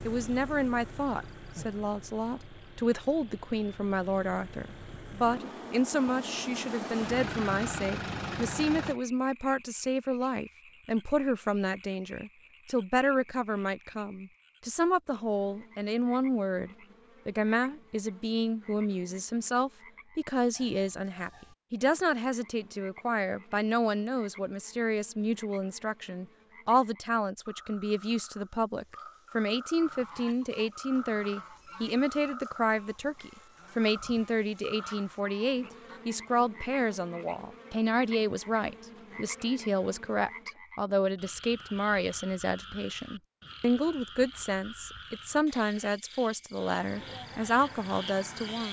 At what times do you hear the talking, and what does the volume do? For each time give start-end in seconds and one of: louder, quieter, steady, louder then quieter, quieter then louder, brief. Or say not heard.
0.1-48.6 steady.